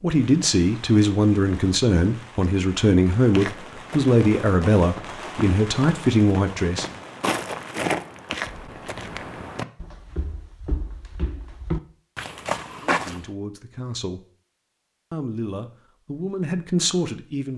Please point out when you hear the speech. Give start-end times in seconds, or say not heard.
0.0-6.9, 12.7-14.2, 15.1-17.5.